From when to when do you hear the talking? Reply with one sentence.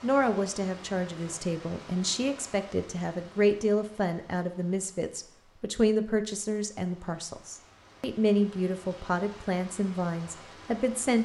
You can hear the talking from 0.0 to 11.2 s.